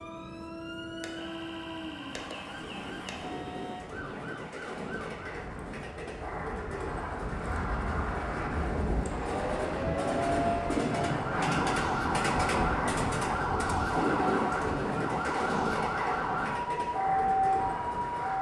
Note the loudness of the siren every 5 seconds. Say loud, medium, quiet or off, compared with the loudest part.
quiet, medium, loud, loud.